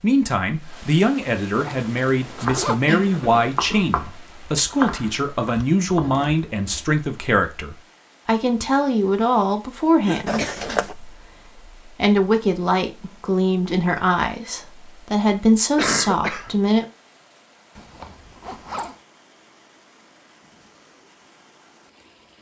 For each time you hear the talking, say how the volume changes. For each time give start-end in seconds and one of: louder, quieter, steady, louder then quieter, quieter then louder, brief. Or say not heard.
0.0-16.9 steady.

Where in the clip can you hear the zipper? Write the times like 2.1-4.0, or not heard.
1.5-3.2, 10.2-10.9, 17.8-18.9.